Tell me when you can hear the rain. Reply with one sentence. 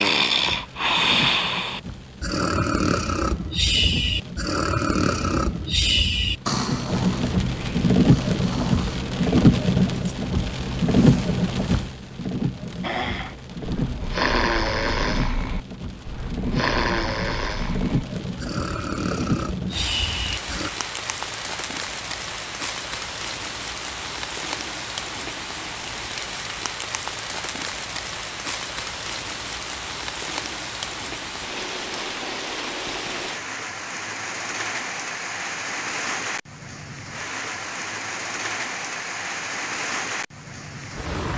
You can hear the rain from 0.1 to 41.3 s.